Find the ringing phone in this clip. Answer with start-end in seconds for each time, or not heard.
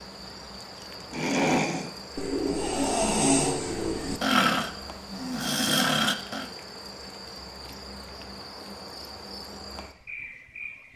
not heard.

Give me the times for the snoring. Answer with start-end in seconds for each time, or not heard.
1.1-6.5.